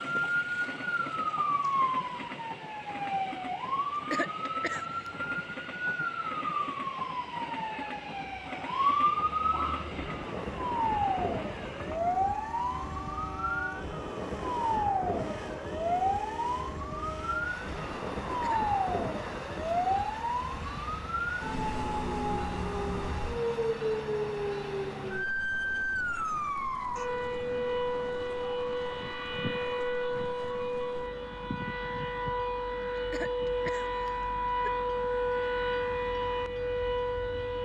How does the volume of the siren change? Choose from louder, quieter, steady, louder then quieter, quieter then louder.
steady.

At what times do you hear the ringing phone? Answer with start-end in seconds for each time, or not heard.
not heard.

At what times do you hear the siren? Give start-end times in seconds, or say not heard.
0.0-37.6.